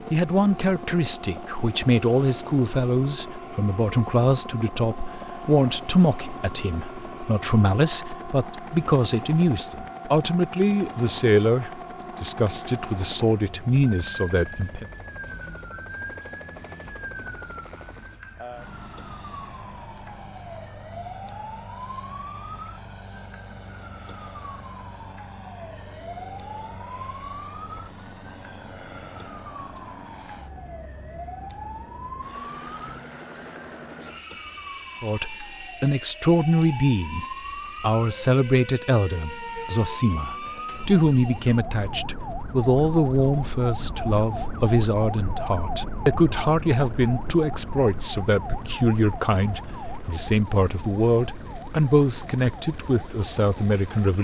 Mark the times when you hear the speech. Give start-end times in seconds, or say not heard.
0.1-14.8, 35.0-54.1.